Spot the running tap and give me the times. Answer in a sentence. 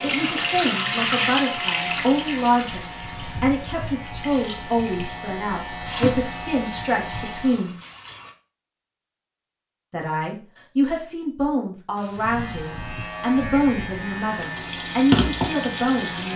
You can hear the running tap from 0.0 to 8.3 s and from 11.9 to 16.3 s.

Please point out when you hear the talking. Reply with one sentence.
The talking can be heard from 0.0 to 7.8 s and from 9.9 to 16.3 s.